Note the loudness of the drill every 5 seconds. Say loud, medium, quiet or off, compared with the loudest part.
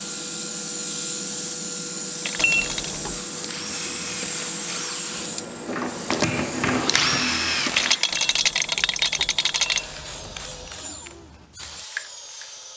medium, loud, quiet.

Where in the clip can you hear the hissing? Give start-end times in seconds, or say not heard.
0.0-12.7.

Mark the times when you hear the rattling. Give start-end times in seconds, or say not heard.
2.2-3.0, 7.7-9.8.